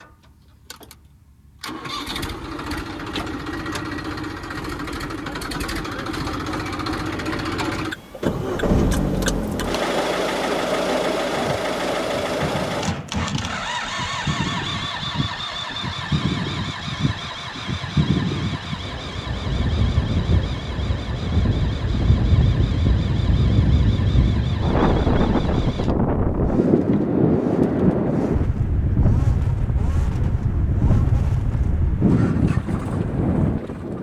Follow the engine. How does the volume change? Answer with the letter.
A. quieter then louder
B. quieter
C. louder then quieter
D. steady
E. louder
C.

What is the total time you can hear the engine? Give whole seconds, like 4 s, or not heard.
34 s.